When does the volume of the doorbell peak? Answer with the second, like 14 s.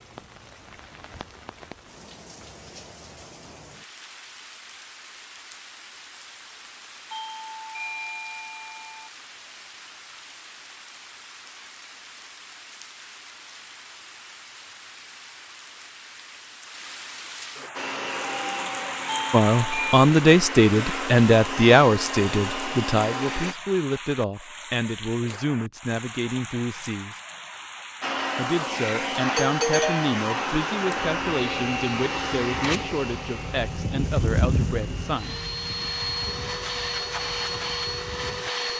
30 s.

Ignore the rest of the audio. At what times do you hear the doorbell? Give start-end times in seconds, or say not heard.
7.1-9.1, 19.1-20.1, 29.2-30.1.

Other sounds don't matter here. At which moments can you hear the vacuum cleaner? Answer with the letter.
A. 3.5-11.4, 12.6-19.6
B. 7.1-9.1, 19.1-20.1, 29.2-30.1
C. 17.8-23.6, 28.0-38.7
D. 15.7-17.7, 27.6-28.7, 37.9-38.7
C.